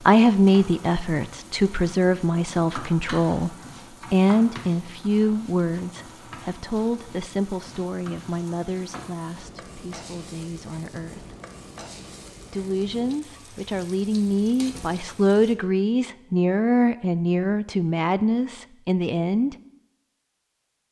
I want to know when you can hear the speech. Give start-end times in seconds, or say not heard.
0.0-11.3, 12.5-19.6.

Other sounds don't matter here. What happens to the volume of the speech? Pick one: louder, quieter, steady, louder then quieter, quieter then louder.
quieter then louder.